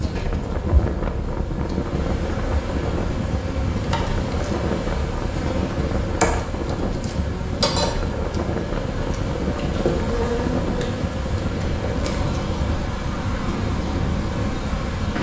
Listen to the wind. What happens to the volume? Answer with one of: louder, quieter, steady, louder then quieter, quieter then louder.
steady.